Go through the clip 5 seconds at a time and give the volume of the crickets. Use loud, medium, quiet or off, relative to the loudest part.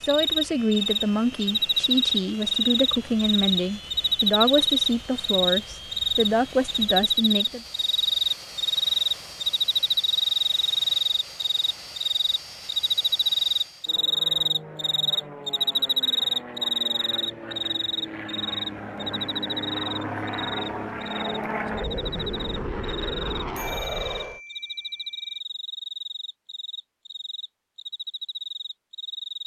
loud, loud, loud, loud, quiet, quiet.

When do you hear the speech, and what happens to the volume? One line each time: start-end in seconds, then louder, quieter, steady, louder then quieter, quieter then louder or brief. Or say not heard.
0.1-7.6 steady.